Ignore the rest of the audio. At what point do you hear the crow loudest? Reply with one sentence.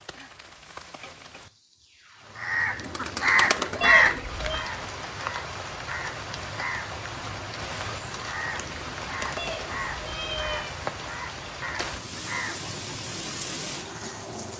The loudest moment of the crow is at 4 seconds.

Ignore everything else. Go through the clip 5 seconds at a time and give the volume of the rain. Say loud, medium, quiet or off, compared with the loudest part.
medium, loud, loud.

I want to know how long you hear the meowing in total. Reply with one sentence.
The meowing can be heard for 2 seconds in total.